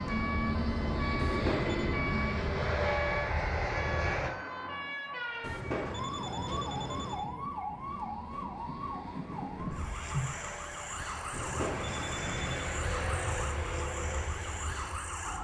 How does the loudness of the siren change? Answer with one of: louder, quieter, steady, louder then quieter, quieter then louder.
steady.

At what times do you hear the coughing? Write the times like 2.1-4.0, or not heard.
9.6-10.3.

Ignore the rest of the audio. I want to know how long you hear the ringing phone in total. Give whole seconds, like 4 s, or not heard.
4 s.